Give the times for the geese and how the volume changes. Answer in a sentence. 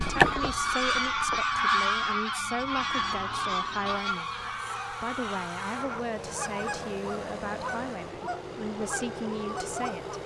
The geese can be heard from 0.0 to 10.2 s, getting quieter.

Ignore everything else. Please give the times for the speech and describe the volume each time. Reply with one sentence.
You can hear the speech from 0.0 to 10.2 s, at a steady volume.